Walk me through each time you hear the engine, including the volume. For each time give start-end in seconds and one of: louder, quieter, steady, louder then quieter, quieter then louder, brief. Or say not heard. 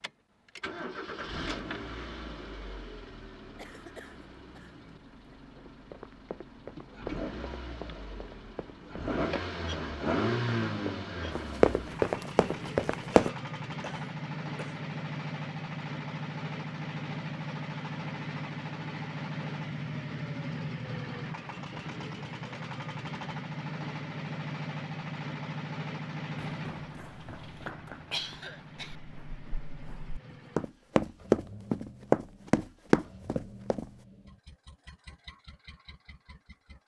0.0-36.8 louder then quieter.